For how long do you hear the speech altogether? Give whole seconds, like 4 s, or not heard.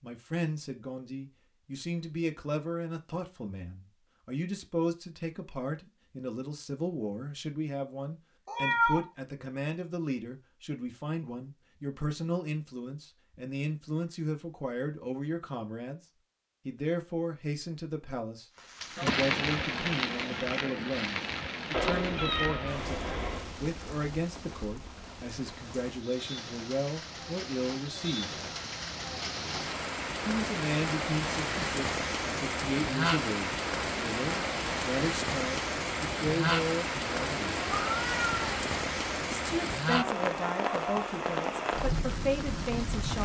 39 s.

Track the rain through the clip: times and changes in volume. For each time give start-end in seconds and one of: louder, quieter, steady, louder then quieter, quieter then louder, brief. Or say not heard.
18.6-43.2 quieter then louder.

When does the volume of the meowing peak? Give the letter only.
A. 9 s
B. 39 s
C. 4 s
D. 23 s
A.